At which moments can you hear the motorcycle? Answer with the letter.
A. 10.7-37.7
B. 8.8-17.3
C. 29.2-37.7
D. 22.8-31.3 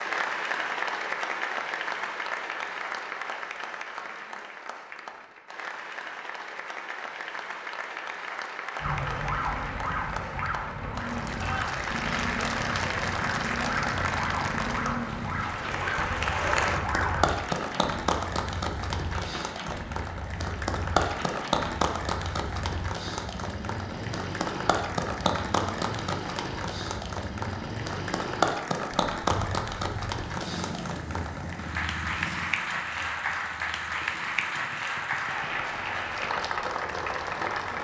A.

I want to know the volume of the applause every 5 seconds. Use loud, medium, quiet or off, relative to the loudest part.
loud, medium, loud, loud, loud, loud, loud, loud.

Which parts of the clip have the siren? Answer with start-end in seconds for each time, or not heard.
8.8-17.3.